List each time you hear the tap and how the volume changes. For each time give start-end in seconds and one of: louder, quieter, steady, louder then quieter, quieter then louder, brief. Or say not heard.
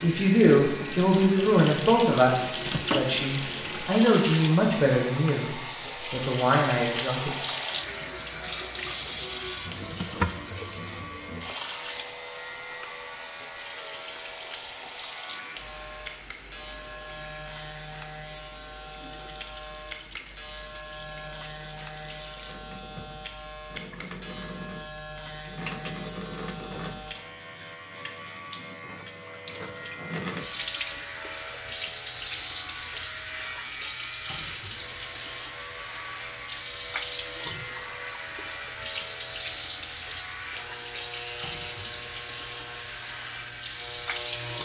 0.0-44.6 quieter then louder.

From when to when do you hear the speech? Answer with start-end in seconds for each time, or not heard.
0.0-7.3.